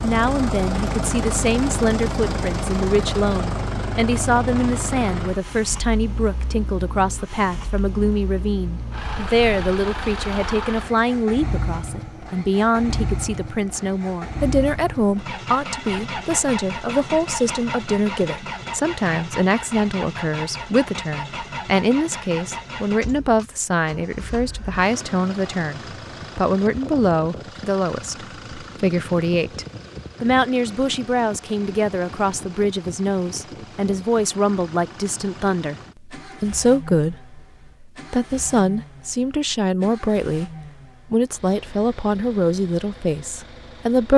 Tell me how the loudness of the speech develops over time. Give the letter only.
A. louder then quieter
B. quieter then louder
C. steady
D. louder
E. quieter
C.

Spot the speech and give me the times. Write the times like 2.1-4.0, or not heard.
0.0-44.1.